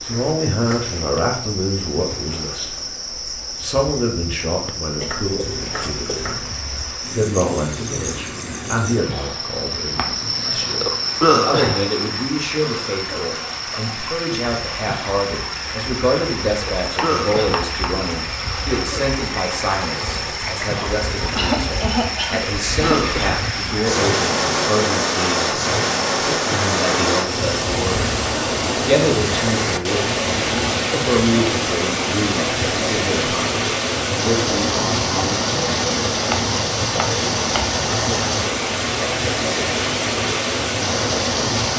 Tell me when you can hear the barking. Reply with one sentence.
You can't hear the barking here.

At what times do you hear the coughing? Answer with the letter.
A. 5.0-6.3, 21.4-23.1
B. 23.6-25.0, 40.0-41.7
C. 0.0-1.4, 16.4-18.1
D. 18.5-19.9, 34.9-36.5
A.